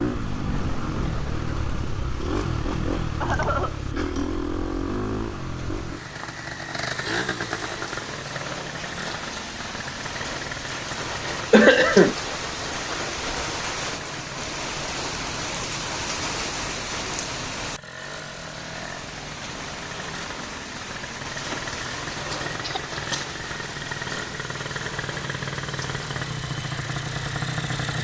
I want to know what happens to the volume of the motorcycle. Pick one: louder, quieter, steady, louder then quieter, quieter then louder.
quieter then louder.